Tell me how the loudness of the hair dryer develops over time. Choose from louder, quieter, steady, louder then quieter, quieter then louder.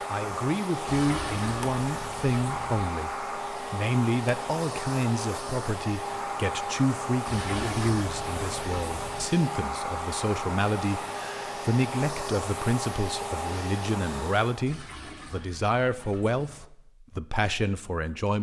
steady.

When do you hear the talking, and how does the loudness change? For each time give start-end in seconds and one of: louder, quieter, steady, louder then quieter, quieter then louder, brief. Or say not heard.
0.1-18.3 steady.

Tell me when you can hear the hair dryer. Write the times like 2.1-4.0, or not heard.
0.0-14.8.